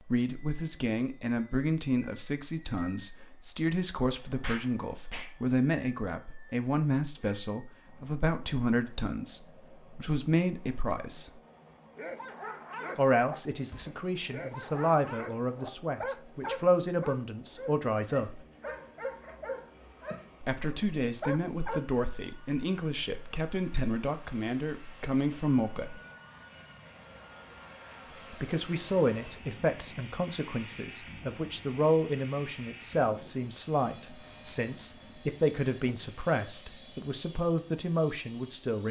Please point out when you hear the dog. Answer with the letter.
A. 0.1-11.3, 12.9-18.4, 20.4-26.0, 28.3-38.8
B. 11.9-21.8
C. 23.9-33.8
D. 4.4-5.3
B.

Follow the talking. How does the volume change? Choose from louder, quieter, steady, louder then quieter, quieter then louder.
steady.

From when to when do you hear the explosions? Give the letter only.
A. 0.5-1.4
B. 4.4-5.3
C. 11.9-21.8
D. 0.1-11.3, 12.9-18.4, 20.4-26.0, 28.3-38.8
B.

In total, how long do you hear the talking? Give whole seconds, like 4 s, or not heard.
33 s.